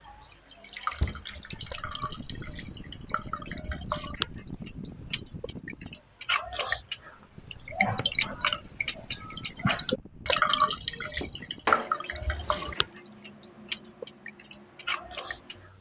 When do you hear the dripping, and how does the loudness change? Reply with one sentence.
The dripping can be heard from 0.0 to 15.7 s, getting louder then quieter.